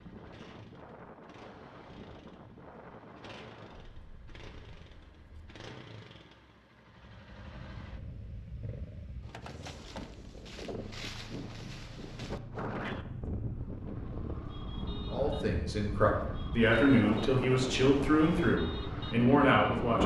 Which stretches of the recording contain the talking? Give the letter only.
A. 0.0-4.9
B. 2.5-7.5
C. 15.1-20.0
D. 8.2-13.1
C.